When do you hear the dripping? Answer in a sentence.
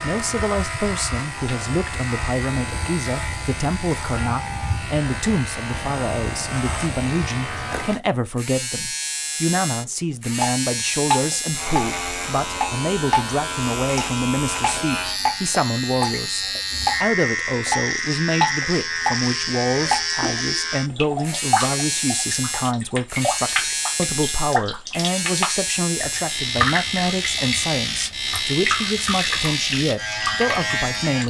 You can hear the dripping from 10.4 to 31.2 s.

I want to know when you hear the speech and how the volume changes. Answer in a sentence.
You can hear the speech from 0.0 to 31.2 s, at a steady volume.